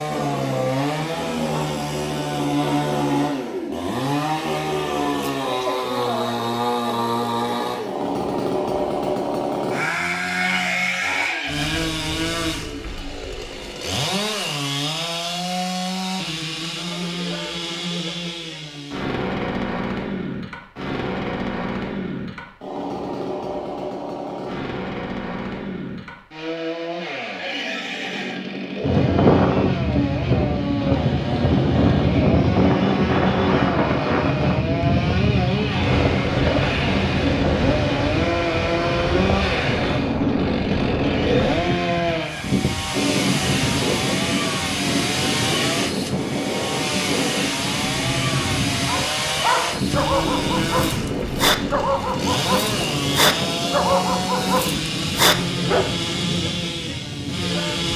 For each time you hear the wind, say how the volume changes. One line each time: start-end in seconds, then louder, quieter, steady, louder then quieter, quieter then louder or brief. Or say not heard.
28.8-57.9 quieter.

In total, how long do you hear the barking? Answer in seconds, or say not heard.
7 s.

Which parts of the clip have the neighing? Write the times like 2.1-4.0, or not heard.
10.3-11.9, 27.4-28.4, 41.0-42.5.